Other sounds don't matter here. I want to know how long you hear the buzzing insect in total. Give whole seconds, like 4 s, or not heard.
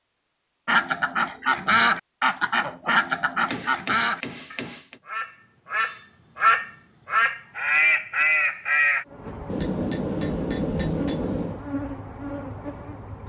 4 s.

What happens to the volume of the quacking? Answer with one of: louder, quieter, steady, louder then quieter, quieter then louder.
quieter then louder.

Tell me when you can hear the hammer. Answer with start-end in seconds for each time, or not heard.
3.5-5.0, 9.4-11.7.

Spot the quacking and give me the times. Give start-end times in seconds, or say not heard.
0.7-9.1.